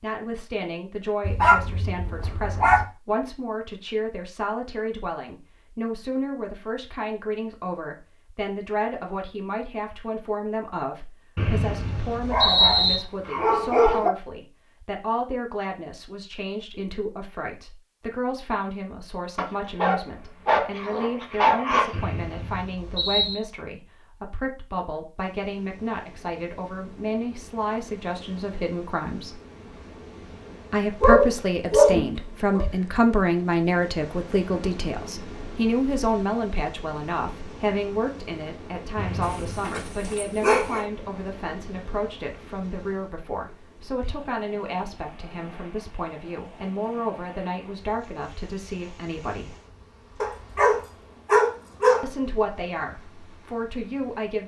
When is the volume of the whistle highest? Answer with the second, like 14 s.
13 s.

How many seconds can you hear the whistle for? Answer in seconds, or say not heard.
4 s.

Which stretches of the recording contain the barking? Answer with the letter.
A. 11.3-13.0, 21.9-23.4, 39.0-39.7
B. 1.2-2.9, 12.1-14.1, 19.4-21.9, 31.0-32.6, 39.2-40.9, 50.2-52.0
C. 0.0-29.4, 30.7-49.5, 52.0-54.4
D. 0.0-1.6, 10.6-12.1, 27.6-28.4
B.